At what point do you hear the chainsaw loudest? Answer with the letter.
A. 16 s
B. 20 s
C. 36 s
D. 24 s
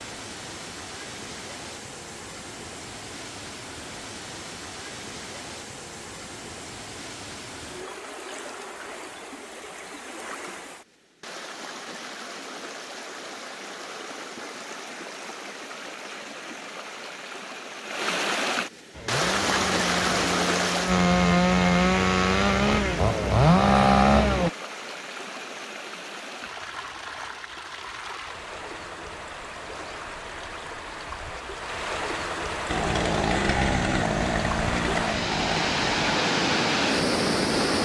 D.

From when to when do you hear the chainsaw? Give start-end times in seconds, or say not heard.
18.9-24.5, 32.6-37.7.